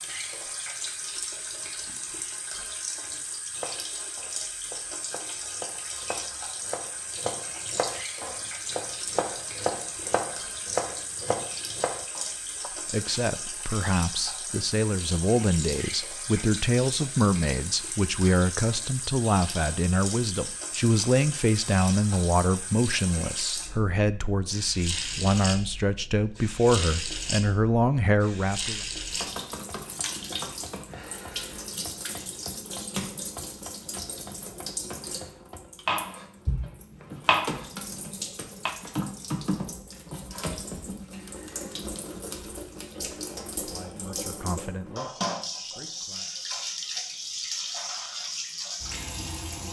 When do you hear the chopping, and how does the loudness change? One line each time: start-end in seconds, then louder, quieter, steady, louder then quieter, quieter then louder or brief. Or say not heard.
3.5-12.7 louder
29.8-38.8 louder.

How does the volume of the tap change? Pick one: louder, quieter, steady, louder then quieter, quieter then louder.
steady.